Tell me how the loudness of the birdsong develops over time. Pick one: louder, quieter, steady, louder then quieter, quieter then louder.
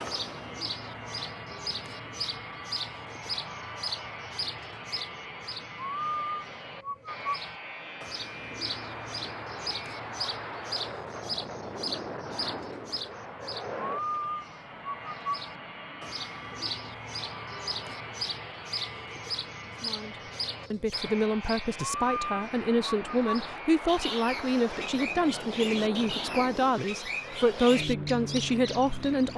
steady.